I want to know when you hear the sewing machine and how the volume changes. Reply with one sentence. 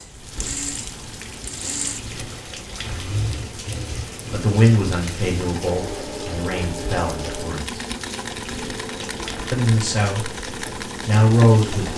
The sewing machine can be heard from 0.0 to 11.9 s, at a steady volume.